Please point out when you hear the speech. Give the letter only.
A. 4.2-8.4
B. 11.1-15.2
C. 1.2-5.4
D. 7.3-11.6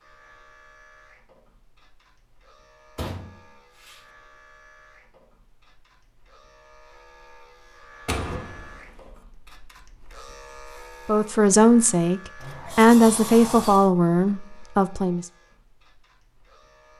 B.